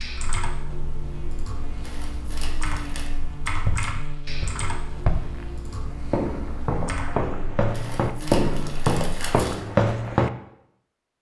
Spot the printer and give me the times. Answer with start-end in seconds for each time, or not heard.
not heard.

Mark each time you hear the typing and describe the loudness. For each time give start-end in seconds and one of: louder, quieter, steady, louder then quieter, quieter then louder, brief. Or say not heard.
0.0-7.3 louder then quieter.